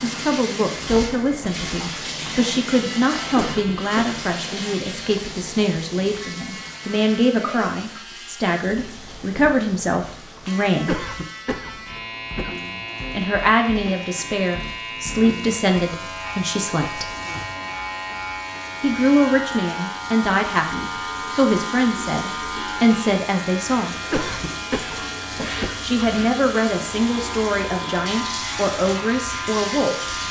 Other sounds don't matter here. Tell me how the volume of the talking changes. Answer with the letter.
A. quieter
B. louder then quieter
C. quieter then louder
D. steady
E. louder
D.